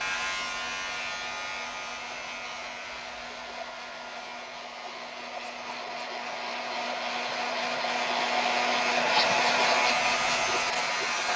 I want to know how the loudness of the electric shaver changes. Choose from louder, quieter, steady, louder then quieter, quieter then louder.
quieter then louder.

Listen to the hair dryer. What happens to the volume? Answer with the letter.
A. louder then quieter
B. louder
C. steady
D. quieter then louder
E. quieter
B.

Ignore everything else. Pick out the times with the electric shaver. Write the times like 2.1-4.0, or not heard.
0.0-11.3.